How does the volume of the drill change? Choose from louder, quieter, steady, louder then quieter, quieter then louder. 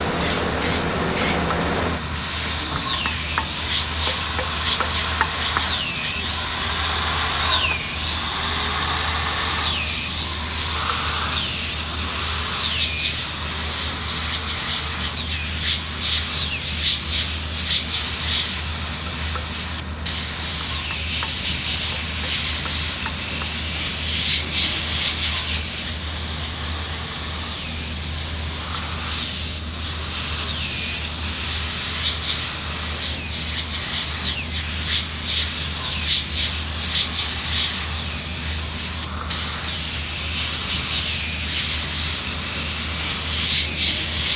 quieter.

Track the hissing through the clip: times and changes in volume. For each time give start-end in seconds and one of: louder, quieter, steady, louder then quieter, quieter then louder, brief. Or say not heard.
0.0-44.3 steady.